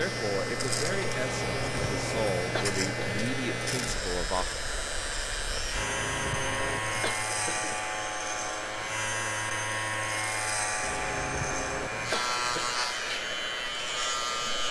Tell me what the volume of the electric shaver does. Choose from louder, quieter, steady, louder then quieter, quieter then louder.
steady.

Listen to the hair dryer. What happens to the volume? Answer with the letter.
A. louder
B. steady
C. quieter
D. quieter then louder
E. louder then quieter
B.